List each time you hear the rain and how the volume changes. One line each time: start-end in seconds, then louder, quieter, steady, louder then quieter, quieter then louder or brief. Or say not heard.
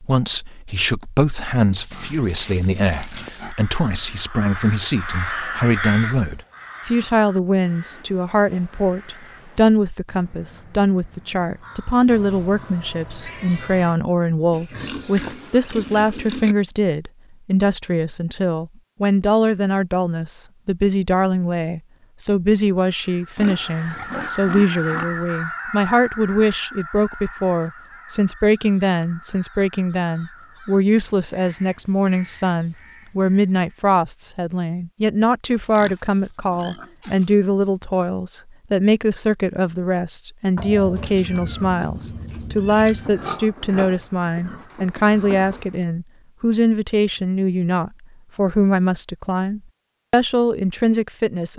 not heard.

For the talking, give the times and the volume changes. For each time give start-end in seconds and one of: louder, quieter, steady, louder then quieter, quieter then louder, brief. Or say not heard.
0.0-51.5 steady.